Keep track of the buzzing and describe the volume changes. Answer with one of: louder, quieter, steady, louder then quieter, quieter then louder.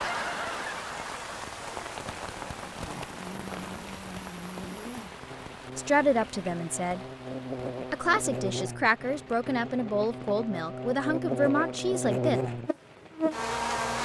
louder.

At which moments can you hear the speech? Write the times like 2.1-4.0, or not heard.
5.8-7.0, 7.9-12.4.